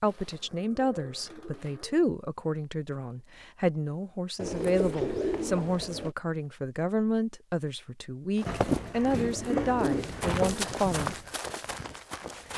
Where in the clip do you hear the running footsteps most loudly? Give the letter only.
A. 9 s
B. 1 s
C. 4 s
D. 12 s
A.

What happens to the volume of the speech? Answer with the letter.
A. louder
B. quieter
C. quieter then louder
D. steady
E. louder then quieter
D.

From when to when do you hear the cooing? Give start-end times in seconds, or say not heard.
0.1-1.9, 4.3-6.2, 8.4-10.7.